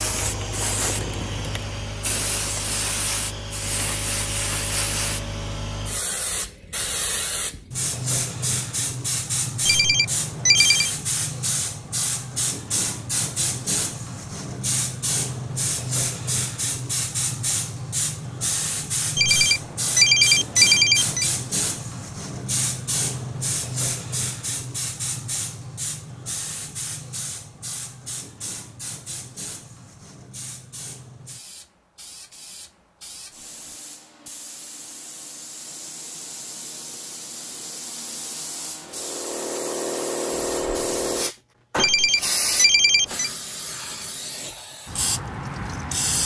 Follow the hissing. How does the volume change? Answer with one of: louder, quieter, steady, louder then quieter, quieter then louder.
quieter then louder.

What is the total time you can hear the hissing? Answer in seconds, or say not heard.
46 s.